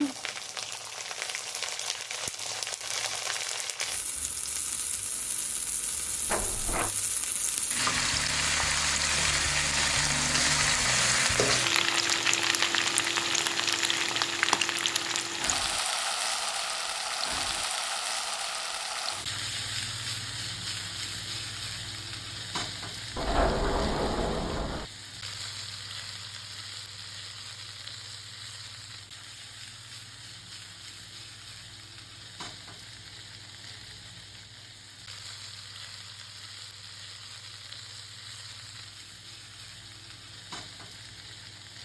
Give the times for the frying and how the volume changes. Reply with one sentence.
The frying can be heard from 0.0 to 41.7 s, getting louder then quieter.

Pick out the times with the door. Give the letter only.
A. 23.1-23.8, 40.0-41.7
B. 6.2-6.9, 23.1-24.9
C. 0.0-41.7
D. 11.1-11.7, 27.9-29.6
B.